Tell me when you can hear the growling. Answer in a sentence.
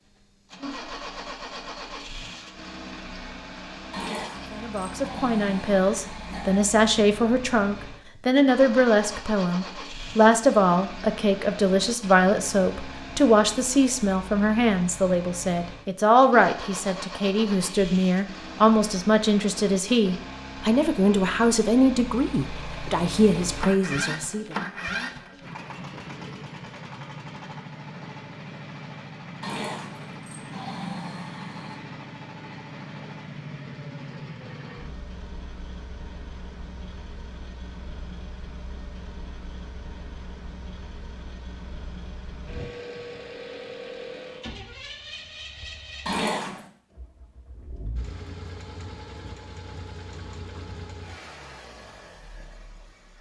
You can hear the growling from 3.9 to 6.7 s, from 29.4 to 31.8 s and from 46.0 to 46.6 s.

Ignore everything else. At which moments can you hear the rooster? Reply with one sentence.
You can't hear the rooster here.